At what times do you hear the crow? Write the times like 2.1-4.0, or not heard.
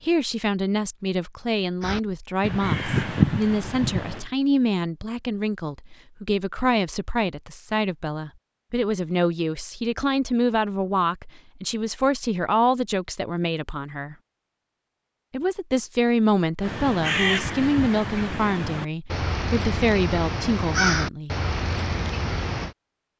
1.8-4.2, 16.6-22.8.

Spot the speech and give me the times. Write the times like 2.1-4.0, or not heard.
0.0-14.2, 15.3-21.4.